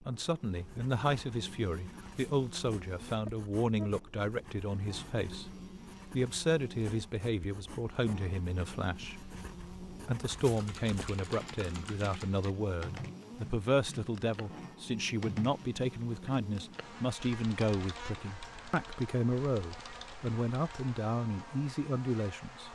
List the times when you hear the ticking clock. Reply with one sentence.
The ticking clock can't be heard in this clip.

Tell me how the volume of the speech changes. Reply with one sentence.
The loudness of the speech stays about the same.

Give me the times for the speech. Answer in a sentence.
The speech can be heard from 0.0 to 22.7 s.